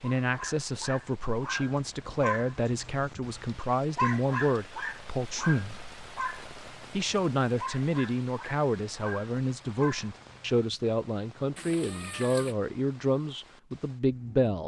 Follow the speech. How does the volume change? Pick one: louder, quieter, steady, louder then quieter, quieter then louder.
steady.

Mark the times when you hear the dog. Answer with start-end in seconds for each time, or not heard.
0.1-10.8.